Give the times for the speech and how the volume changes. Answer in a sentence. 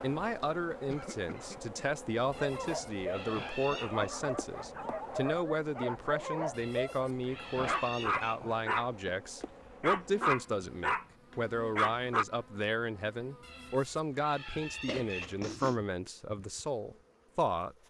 The speech can be heard from 0.0 to 17.8 s, at a steady volume.